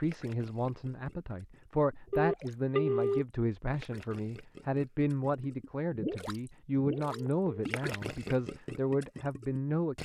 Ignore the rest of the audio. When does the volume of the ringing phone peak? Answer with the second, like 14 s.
3 s.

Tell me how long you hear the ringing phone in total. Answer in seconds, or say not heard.
2 s.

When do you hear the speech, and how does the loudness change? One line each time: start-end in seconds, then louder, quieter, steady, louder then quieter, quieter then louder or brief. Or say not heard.
0.0-9.9 steady.